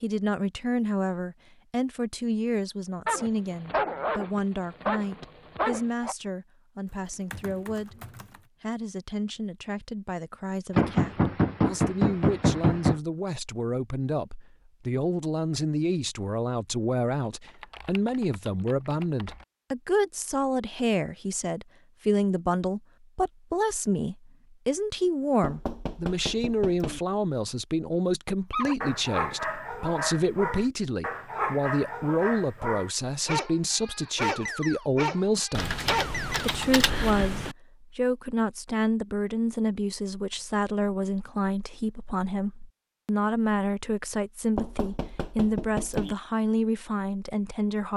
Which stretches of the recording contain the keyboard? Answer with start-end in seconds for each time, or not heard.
6.8-8.4, 17.4-19.4, 35.5-37.5.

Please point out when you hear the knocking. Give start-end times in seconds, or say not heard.
10.8-13.0, 25.4-27.0, 44.5-46.1.